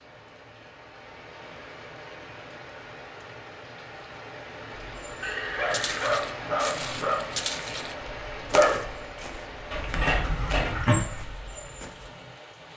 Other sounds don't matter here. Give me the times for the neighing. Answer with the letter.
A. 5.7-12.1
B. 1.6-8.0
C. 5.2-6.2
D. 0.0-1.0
C.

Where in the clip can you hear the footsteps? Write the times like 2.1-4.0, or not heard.
5.7-12.1.